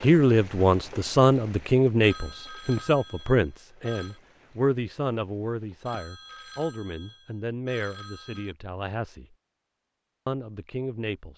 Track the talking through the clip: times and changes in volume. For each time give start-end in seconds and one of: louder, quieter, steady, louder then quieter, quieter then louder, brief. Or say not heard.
0.0-9.3 quieter
10.2-11.3 brief.